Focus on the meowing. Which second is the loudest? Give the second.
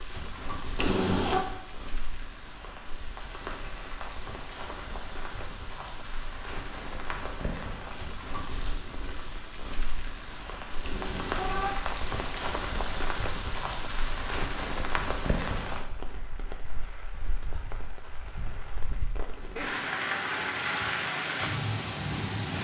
1 s.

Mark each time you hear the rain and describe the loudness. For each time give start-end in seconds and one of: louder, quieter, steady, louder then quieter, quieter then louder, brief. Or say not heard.
0.0-22.5 louder.